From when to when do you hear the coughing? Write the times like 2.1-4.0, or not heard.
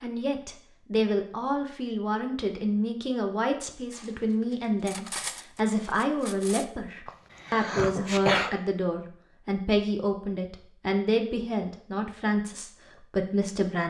7.0-8.5.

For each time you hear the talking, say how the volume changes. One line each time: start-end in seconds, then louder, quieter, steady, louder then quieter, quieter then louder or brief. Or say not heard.
0.0-13.8 steady.